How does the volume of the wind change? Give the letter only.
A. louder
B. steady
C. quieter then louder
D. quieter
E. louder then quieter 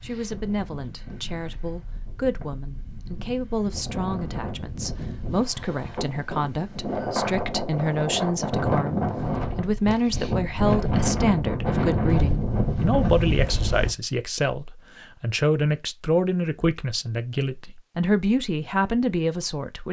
A.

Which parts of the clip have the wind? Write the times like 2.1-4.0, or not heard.
0.0-13.9.